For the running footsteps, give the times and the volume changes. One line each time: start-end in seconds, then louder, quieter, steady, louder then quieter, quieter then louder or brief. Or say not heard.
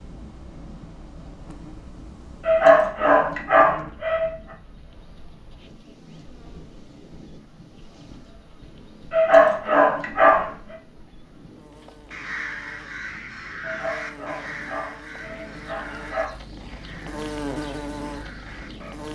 not heard.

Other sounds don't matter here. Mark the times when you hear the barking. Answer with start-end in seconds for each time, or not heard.
2.5-4.3, 9.1-10.8, 13.6-16.4.